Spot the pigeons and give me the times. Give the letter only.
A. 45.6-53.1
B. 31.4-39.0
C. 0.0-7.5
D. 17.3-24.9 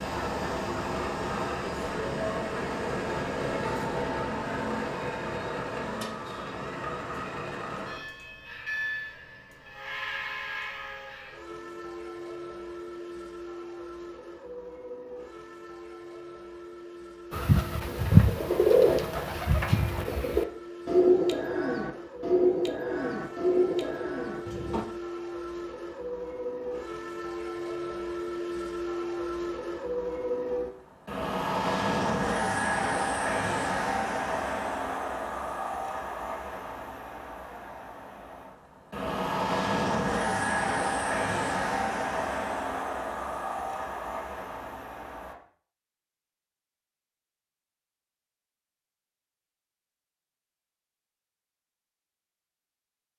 D.